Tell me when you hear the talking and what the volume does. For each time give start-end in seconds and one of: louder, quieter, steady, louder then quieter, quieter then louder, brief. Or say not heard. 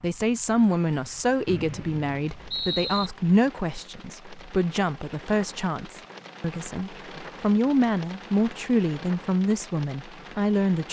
0.0-10.8 steady.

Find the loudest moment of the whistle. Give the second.
3 s.